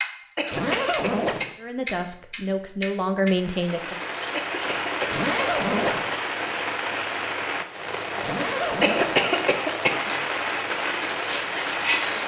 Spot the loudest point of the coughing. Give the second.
9 s.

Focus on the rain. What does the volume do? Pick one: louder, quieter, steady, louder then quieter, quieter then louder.
steady.